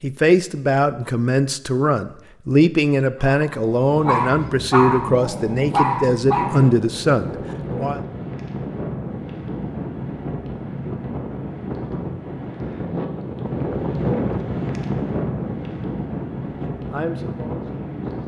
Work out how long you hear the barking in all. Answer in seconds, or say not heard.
3 s.